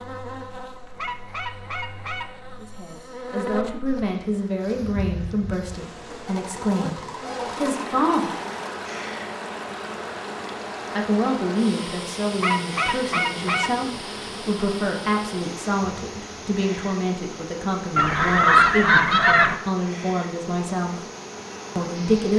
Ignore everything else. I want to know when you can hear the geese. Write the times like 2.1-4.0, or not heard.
0.9-2.2, 6.2-8.6, 12.4-13.7, 17.9-19.6.